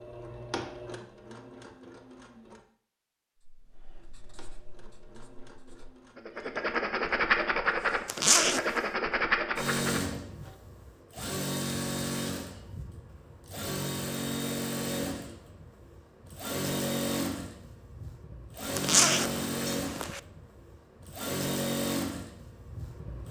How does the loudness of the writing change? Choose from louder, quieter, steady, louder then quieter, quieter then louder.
louder.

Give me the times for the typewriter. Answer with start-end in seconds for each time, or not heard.
not heard.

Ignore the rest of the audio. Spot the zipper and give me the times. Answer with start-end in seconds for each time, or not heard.
8.1-8.7, 18.8-20.2.